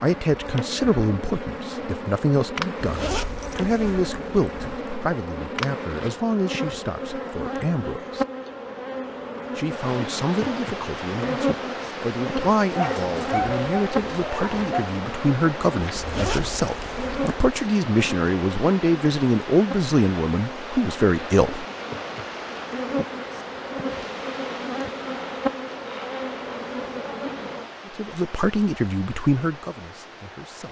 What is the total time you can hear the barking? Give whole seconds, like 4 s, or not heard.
2 s.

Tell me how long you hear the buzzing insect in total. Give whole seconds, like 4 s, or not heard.
28 s.